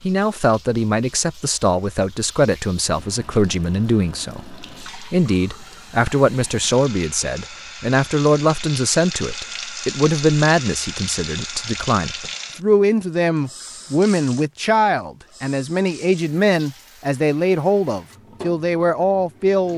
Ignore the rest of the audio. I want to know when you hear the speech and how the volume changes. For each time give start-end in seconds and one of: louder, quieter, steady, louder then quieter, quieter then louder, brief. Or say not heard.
0.0-19.7 steady.